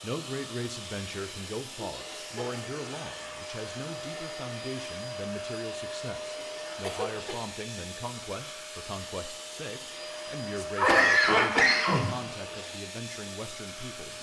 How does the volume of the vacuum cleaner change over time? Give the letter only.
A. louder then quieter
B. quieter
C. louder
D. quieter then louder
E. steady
E.